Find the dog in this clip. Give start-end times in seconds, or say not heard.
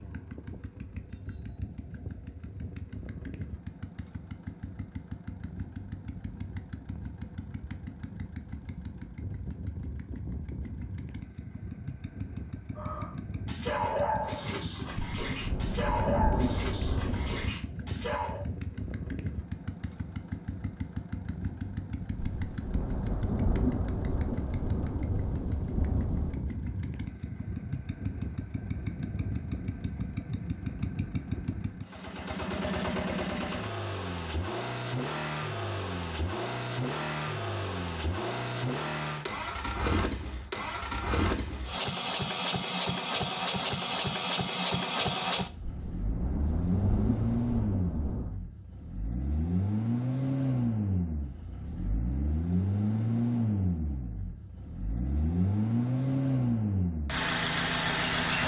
12.8-18.4.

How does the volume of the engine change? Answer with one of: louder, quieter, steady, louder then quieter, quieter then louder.
louder.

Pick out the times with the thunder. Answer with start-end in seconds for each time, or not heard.
15.2-17.5, 22.1-26.4, 45.6-48.4.